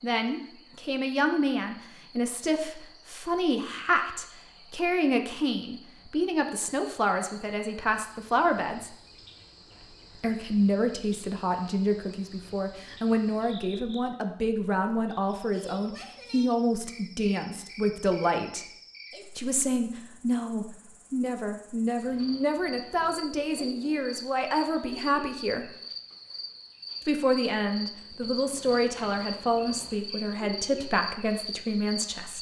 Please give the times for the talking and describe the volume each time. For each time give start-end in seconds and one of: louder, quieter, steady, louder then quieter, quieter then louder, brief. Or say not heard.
0.0-8.9 steady
10.2-18.6 steady
19.4-25.7 steady
27.1-32.3 steady.